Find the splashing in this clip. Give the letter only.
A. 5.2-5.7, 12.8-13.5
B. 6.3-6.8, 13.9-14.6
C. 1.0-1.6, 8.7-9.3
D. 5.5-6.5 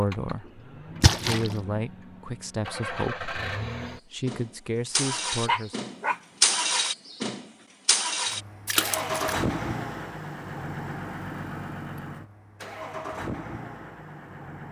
C.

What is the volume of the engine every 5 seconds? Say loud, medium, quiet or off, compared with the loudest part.
medium, loud, medium.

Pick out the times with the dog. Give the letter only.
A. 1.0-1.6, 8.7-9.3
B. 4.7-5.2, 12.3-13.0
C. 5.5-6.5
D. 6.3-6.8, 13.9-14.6
C.